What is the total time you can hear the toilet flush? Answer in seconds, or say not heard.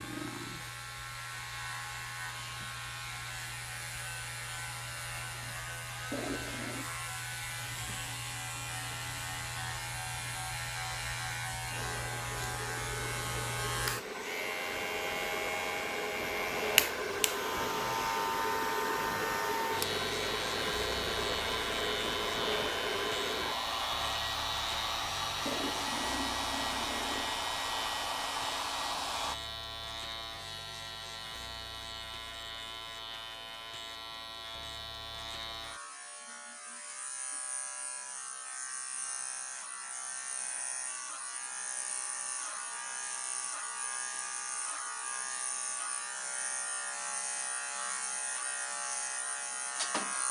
3 s.